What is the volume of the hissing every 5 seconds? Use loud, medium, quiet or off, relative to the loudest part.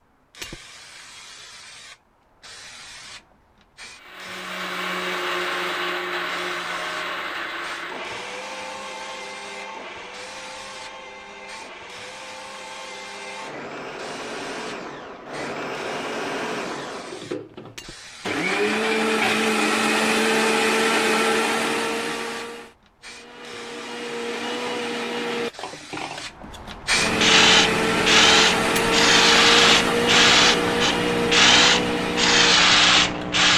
quiet, quiet, quiet, quiet, quiet, loud, loud.